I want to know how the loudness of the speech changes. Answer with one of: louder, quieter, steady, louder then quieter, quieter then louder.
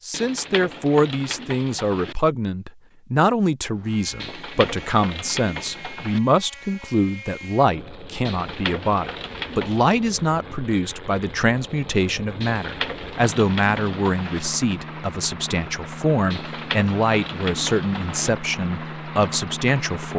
steady.